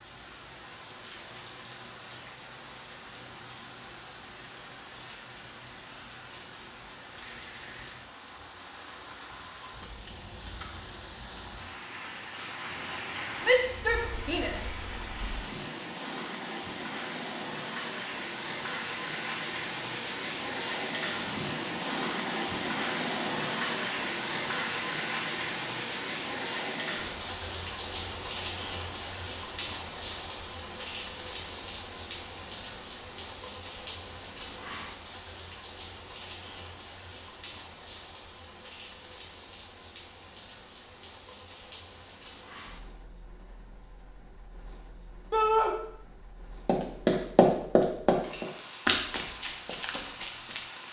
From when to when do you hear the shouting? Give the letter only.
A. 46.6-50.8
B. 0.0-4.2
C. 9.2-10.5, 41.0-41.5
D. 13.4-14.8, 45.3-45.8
D.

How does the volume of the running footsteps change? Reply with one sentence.
The loudness of the running footsteps goes down.